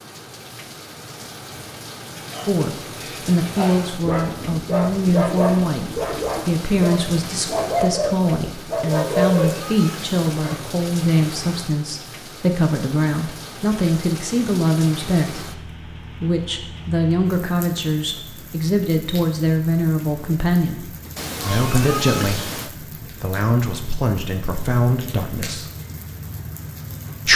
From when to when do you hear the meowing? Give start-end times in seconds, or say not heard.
9.1-10.2, 21.1-22.7.